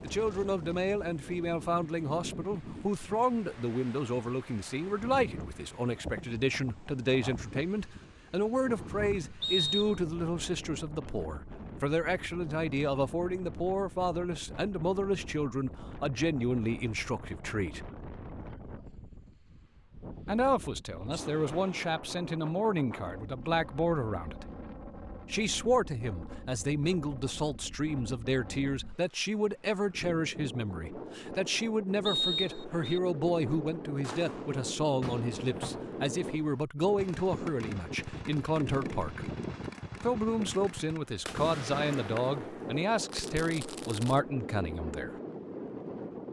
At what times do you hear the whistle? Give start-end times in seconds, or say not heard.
9.4-10.0, 32.0-33.0.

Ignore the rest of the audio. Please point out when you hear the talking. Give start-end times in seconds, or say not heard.
0.0-17.9, 20.2-24.4, 25.3-39.3, 40.0-45.2.